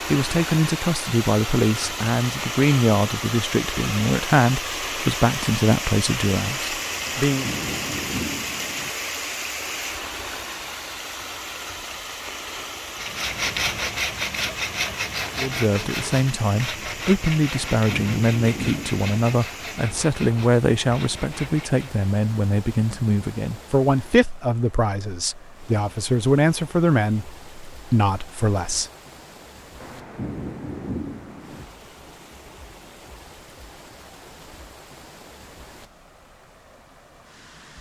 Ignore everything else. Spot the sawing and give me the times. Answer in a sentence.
You can hear the sawing from 12.9 to 22.1 s.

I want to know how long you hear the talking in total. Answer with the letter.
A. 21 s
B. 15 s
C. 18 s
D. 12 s
A.